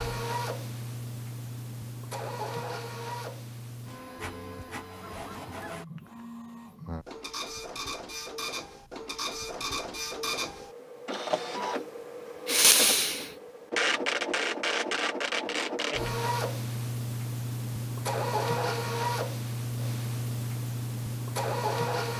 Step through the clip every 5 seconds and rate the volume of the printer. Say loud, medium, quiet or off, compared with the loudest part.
medium, medium, loud, loud, loud.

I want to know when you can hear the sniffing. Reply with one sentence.
You can hear the sniffing from 12.4 to 13.3 s.